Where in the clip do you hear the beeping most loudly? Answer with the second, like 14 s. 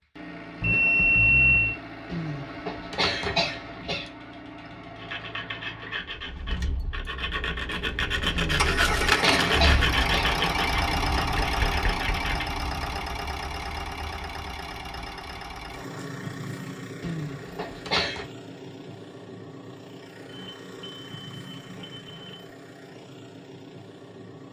1 s.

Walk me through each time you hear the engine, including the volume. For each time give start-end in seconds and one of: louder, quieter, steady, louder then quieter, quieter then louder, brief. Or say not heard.
0.0-24.4 louder then quieter.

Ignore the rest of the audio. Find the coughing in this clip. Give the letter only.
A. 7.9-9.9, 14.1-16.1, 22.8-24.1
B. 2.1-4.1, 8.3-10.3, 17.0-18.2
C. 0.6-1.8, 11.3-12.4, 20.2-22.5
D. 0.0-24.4
B.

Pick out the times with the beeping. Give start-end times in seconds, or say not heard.
0.6-1.8, 11.3-12.4, 20.2-22.5.